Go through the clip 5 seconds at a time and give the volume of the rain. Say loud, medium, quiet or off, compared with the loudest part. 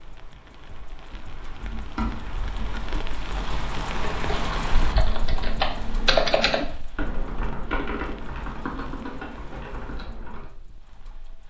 loud, medium, quiet.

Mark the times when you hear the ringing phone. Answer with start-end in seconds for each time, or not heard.
not heard.